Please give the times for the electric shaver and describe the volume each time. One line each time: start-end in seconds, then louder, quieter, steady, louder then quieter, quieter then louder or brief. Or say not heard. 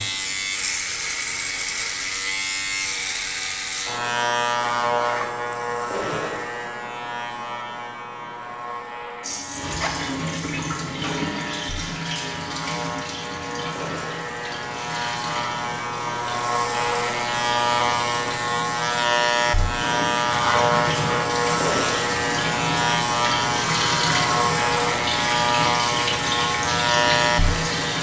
0.0-27.9 quieter then louder.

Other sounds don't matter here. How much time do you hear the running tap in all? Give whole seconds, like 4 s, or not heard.
19 s.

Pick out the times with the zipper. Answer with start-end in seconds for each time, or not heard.
4.7-6.5, 9.6-10.1, 20.2-21.3.